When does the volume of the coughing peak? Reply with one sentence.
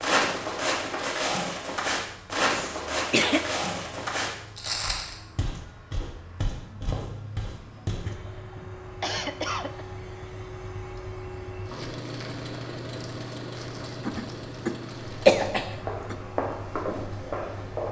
The volume of the coughing peaks at 15 seconds.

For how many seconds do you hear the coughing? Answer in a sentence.
You can hear the coughing for 5 seconds altogether.